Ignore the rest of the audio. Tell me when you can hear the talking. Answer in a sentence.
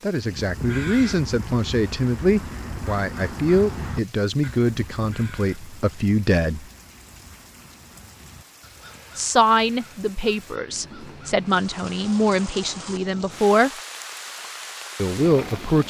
The talking can be heard from 0.0 to 6.7 s, from 9.2 to 13.7 s and from 14.9 to 15.8 s.